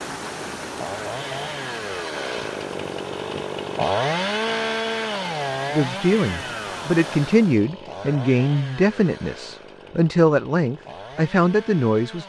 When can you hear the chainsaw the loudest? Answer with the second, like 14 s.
4 s.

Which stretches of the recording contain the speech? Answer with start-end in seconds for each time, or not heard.
5.7-12.2.